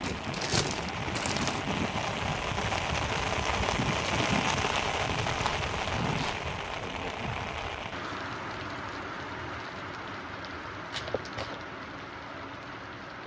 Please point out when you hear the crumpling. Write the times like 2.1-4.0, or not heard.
0.0-1.6, 5.2-6.5, 10.9-11.6.